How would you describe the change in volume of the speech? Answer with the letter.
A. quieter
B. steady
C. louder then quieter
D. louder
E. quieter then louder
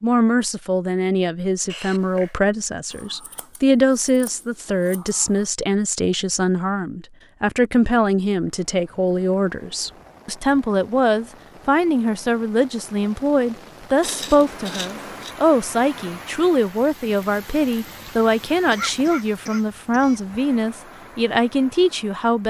B.